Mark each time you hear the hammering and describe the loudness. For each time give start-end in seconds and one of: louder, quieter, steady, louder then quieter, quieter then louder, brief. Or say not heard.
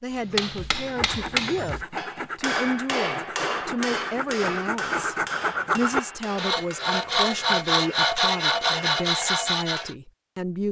0.1-9.9 quieter.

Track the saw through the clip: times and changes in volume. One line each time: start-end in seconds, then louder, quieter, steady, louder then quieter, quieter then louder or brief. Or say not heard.
0.8-9.9 louder.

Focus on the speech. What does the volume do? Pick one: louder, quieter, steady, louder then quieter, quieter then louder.
steady.